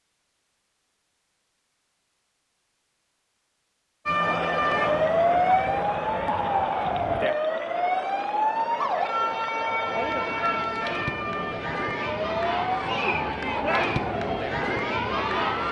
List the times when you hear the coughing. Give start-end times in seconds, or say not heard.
not heard.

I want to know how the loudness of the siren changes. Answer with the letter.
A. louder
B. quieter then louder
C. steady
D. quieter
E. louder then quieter
D.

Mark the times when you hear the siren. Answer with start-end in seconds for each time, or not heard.
4.0-15.6.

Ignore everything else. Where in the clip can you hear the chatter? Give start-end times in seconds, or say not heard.
4.0-15.6.